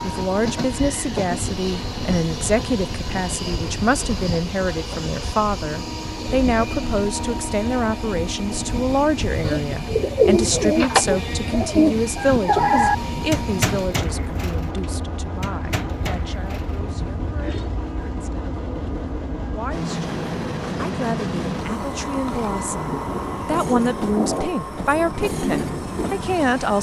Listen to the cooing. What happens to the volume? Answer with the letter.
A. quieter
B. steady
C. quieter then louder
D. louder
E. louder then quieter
A.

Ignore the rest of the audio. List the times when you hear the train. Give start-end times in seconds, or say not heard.
0.0-26.7.